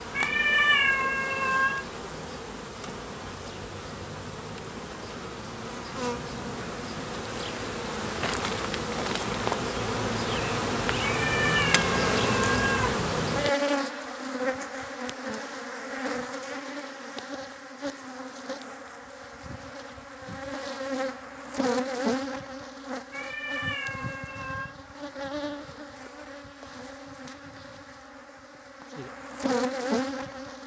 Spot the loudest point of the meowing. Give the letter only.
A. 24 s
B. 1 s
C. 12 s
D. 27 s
B.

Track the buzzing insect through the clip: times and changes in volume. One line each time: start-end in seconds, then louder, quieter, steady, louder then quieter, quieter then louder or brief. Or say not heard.
0.0-30.6 louder then quieter.